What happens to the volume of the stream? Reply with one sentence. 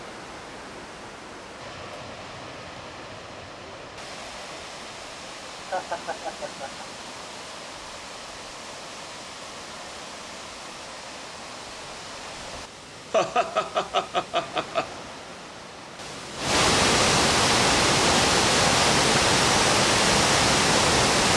The volume of the stream goes up.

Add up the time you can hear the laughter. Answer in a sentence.
You can hear the laughter for 3 seconds altogether.